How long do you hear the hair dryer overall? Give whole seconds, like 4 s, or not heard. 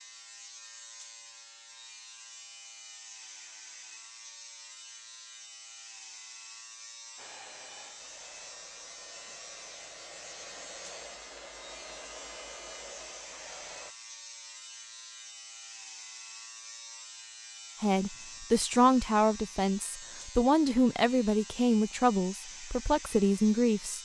7 s.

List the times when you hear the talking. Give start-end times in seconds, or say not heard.
17.8-23.9.